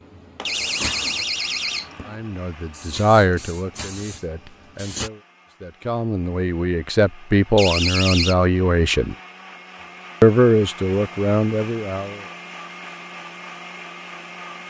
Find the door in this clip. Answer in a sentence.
You can hear the door from 0.5 to 2.0 s and from 7.5 to 8.3 s.